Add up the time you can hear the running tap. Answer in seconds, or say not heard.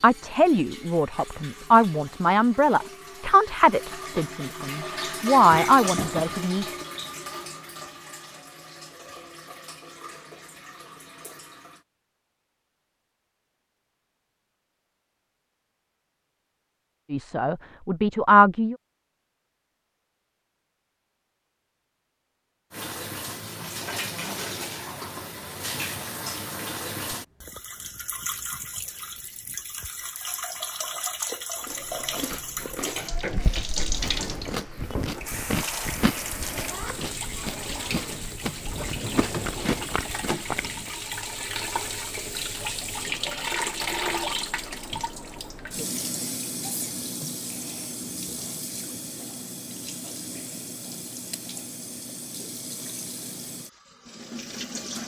44 s.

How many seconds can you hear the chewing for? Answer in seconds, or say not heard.
9 s.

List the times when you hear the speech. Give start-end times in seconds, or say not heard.
0.0-6.8, 17.1-18.8.